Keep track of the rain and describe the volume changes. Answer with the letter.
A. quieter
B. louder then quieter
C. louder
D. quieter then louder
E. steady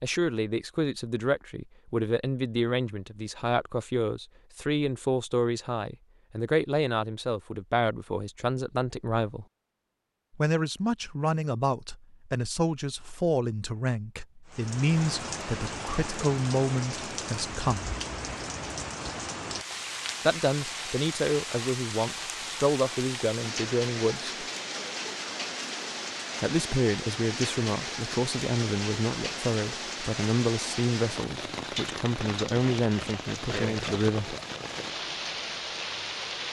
E.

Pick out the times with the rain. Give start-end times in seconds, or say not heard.
14.4-36.4.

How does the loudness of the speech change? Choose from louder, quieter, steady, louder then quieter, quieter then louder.
steady.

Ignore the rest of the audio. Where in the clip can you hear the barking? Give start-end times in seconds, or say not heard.
not heard.